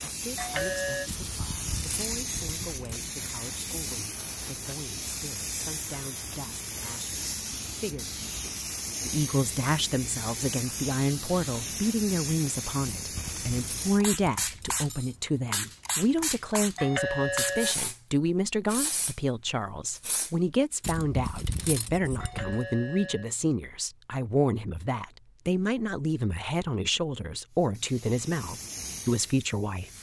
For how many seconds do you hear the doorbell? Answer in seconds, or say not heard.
3 s.